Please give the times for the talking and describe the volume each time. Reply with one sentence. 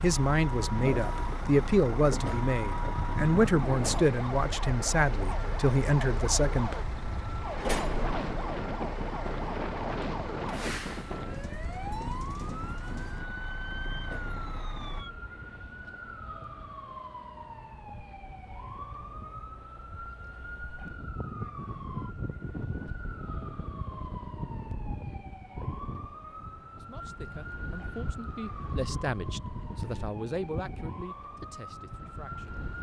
You can hear the talking from 0.0 to 6.8 s, at a steady volume; and from 26.8 to 32.6 s, getting louder then quieter.